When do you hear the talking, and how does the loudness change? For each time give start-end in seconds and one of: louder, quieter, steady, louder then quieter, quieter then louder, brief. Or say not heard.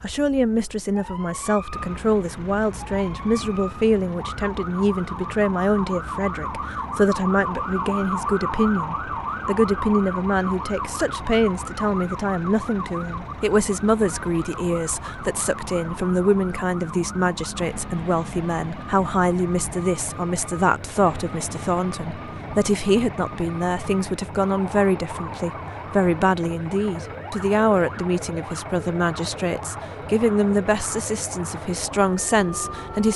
0.0-33.1 steady.